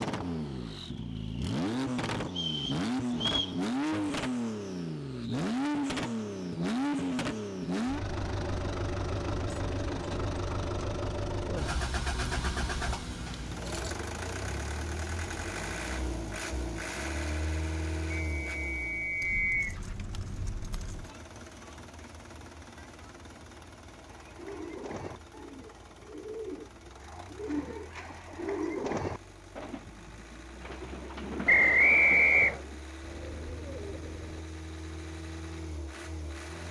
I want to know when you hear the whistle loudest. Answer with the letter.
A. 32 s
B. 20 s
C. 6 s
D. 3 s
A.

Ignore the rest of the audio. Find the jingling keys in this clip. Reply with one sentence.
The jingling keys can be heard from 12.3 to 14.1 s and from 19.2 to 21.1 s.